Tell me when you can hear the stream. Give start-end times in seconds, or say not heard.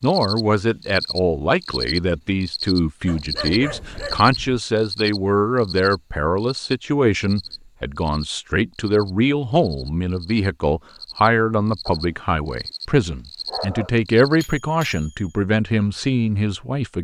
not heard.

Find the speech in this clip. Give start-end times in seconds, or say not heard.
0.0-16.9.